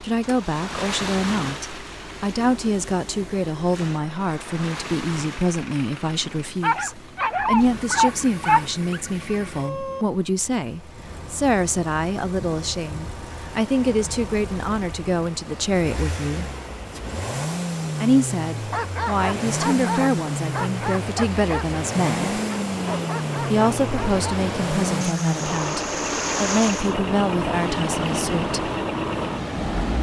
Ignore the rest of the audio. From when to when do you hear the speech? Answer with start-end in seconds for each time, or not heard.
0.0-16.5, 18.0-22.4, 23.5-28.7.